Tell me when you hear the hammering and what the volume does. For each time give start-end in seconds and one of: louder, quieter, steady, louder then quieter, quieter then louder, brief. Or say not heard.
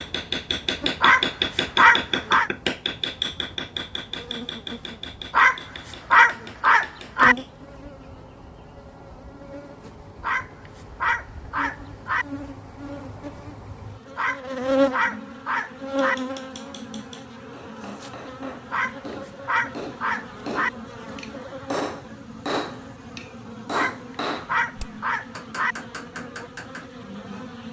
0.0-7.5 quieter
15.9-26.9 louder then quieter.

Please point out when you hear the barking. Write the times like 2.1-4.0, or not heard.
1.0-2.5, 5.3-7.3, 10.2-12.2, 14.2-16.1, 18.7-20.7, 23.7-25.8.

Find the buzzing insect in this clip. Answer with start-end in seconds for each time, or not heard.
0.0-27.6.